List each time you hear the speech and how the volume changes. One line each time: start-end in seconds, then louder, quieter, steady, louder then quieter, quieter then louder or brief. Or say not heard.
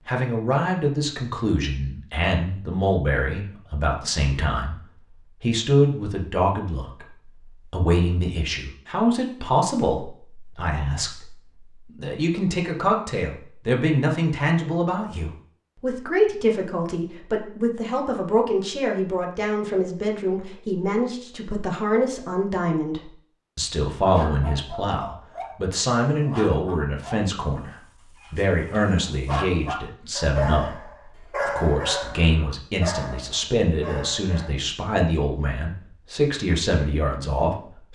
0.1-37.8 steady.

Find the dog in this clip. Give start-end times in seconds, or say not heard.
24.1-34.5.